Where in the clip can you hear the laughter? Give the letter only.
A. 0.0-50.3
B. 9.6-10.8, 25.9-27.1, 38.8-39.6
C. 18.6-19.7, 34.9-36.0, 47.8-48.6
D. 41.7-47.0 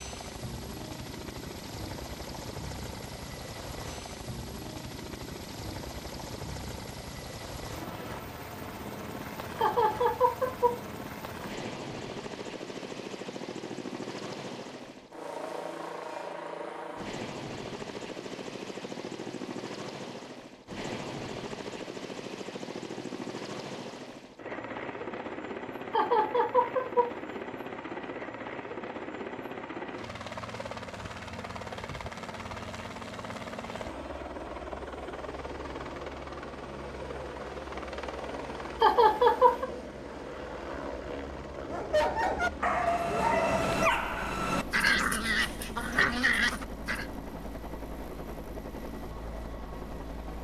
B.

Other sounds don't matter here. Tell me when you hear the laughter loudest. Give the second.
39 s.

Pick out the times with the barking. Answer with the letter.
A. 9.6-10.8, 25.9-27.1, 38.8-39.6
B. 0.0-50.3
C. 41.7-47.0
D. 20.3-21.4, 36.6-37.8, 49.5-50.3
C.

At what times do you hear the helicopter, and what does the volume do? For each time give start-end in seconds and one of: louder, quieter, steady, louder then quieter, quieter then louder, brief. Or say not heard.
0.0-50.3 steady.